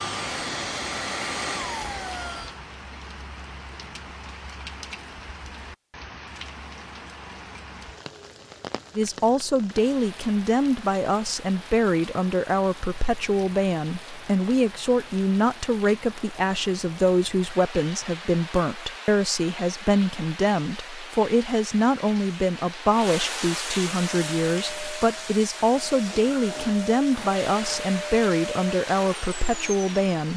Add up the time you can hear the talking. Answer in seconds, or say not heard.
21 s.